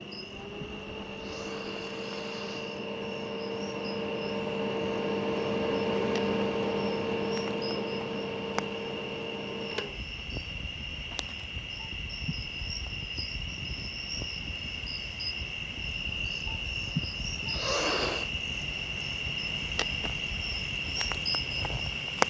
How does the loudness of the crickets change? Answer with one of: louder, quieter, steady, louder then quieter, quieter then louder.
louder.